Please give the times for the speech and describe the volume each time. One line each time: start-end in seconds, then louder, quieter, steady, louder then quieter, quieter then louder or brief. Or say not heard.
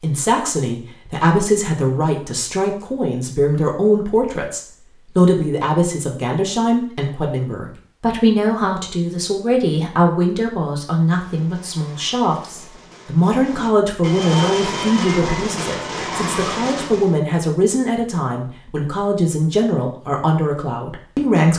0.0-21.5 steady.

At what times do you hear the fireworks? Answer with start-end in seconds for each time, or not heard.
11.1-17.1.